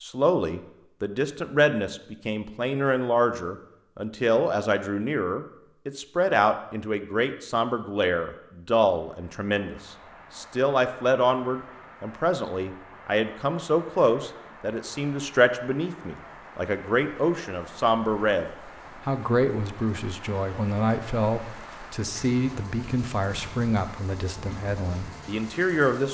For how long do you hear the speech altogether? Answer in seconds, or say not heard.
26 s.